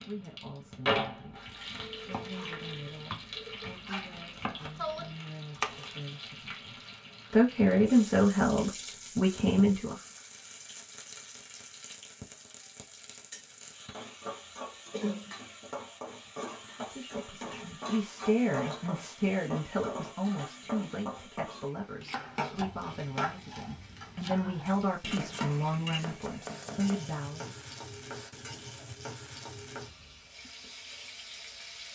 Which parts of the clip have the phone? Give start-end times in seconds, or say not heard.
1.8-3.8.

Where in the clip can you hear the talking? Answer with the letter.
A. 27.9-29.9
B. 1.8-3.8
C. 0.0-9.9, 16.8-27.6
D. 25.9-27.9
C.